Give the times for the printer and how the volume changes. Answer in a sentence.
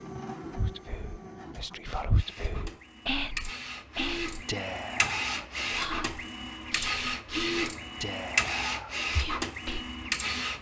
You can hear the printer from 0.0 to 10.5 s, getting louder.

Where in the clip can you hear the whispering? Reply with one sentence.
You can hear the whispering from 0.5 to 9.9 s.